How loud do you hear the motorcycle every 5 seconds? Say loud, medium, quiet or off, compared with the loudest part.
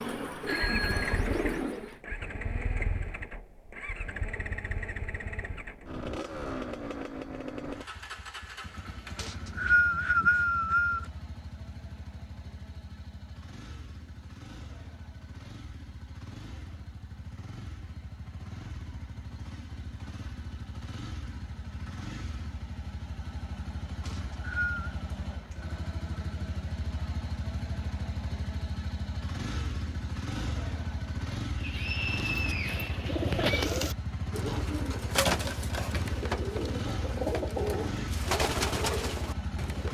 loud, loud, medium, medium, medium, loud, loud, loud.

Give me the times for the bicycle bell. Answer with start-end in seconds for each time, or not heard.
0.5-1.2.